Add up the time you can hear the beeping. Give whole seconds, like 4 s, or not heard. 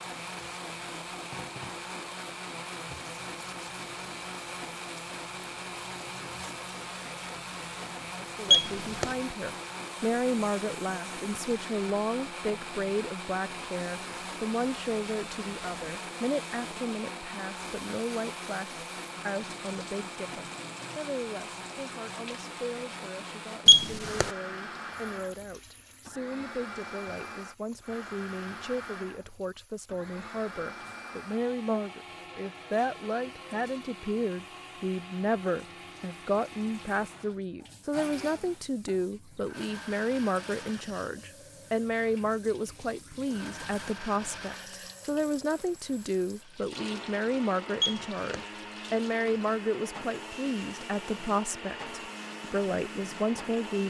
2 s.